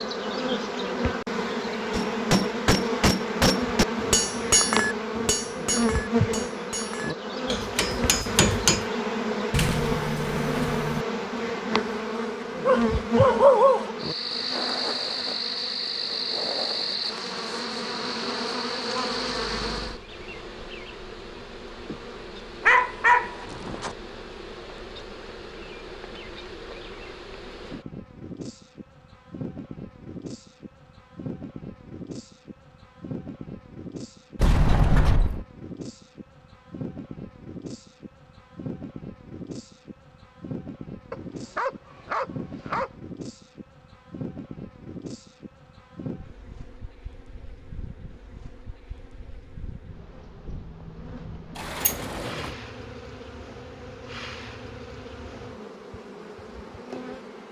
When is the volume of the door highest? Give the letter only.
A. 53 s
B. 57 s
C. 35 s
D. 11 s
C.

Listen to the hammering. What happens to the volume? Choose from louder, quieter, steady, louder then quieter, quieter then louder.
quieter then louder.